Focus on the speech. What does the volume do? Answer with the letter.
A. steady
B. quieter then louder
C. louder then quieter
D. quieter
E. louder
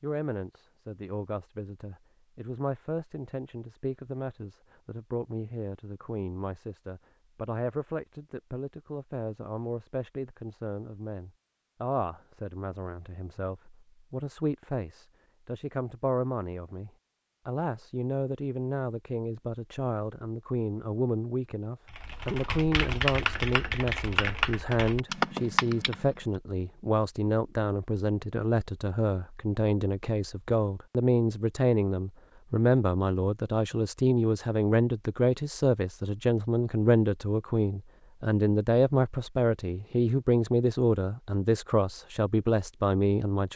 E.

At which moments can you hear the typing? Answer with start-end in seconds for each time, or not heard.
21.9-26.1.